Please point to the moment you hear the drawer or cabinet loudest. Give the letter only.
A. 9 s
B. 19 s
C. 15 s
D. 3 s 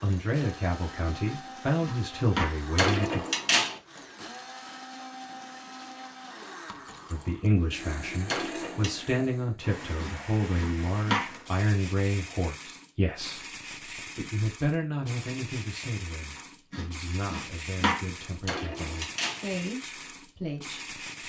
D.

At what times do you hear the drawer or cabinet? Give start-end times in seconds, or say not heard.
2.8-3.8, 8.2-9.1, 18.4-19.4.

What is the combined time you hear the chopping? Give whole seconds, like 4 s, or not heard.
4 s.